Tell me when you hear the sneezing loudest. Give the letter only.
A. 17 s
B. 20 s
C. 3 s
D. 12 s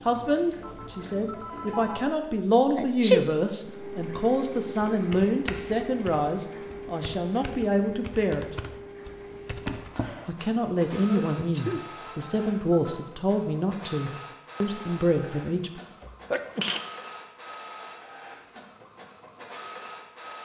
C.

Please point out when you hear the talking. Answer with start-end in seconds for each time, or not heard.
0.1-8.6, 10.2-15.8.